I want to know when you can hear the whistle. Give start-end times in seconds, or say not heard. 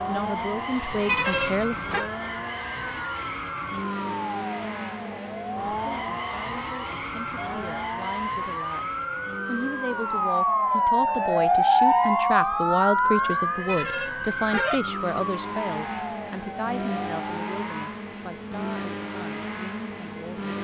not heard.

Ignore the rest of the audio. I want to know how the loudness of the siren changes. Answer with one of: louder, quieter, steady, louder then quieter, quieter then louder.
louder then quieter.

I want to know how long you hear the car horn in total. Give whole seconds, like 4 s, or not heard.
2 s.